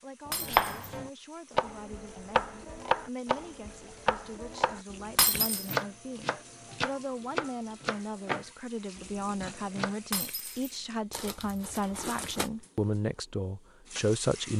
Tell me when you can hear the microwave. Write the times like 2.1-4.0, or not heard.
not heard.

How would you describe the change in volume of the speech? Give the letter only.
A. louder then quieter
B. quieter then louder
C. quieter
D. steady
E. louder
E.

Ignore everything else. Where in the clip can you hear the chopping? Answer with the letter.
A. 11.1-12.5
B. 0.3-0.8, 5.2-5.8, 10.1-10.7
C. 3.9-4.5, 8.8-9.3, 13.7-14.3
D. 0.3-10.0
D.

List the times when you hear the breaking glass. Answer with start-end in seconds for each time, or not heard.
0.3-0.8, 5.2-5.8, 10.1-10.7.